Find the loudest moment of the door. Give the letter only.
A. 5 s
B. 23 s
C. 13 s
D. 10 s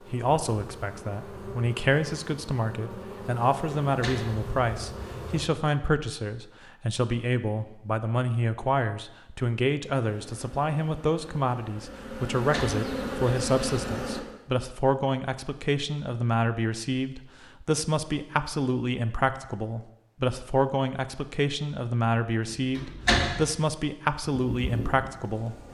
B.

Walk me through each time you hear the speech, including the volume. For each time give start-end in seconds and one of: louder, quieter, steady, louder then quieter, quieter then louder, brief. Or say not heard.
0.1-25.6 steady.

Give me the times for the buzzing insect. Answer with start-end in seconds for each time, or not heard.
0.0-5.5, 10.1-14.2, 24.4-25.7.